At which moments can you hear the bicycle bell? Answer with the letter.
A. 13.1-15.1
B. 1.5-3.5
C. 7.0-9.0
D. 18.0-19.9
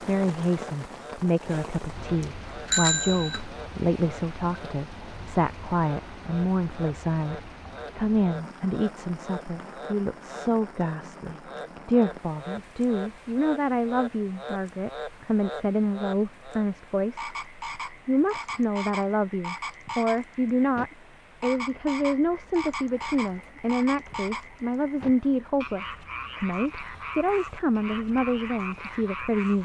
B.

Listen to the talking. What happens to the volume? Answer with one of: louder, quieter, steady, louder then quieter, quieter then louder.
steady.